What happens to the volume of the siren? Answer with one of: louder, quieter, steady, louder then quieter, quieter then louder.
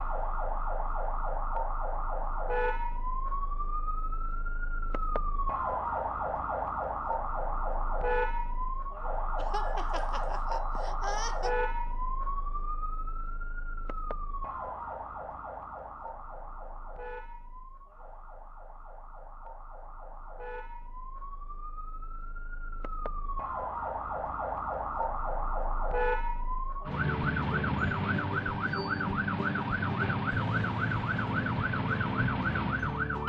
quieter then louder.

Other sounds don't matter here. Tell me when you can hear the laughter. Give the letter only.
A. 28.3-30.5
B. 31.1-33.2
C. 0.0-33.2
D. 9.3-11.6
D.